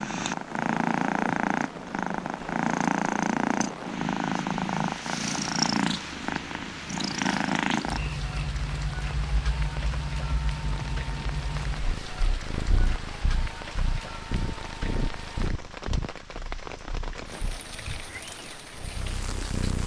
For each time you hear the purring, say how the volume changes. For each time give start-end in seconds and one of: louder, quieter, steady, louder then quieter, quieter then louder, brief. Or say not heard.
0.0-19.8 quieter.